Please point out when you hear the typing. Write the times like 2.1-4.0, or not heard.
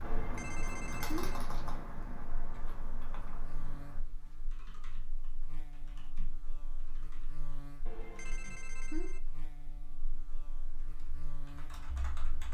0.0-8.6, 10.8-12.4.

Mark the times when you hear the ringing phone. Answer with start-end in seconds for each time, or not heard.
0.0-1.4, 7.8-9.2.